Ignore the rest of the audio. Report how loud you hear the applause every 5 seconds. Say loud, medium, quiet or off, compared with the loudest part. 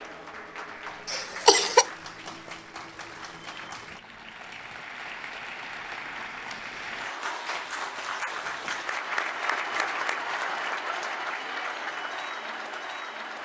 medium, loud, loud.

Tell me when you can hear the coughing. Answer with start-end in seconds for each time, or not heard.
1.1-1.9.